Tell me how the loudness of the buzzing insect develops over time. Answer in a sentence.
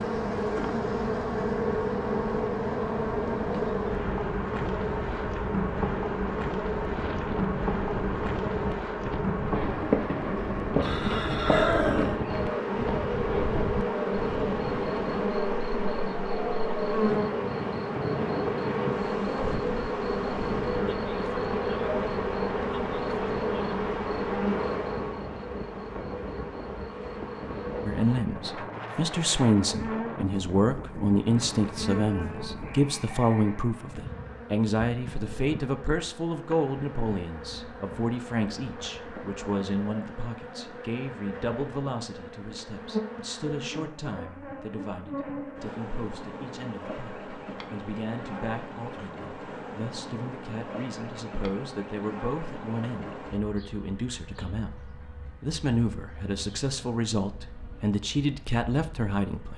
The volume of the buzzing insect goes down.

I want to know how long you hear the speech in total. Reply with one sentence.
You can hear the speech for 32 seconds altogether.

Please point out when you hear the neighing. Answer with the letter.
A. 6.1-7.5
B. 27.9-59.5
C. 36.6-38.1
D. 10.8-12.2
D.